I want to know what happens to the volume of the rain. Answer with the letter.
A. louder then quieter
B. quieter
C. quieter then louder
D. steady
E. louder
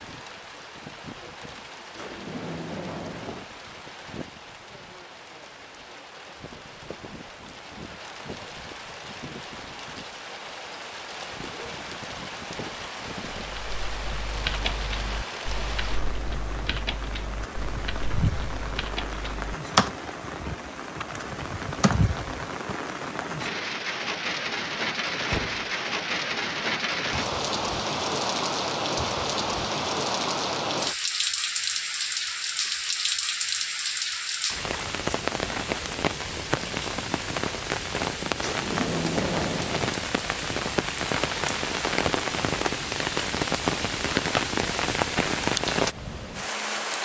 E.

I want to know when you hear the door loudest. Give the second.
39 s.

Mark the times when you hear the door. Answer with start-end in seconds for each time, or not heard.
1.9-3.5, 25.2-25.7, 38.4-39.9.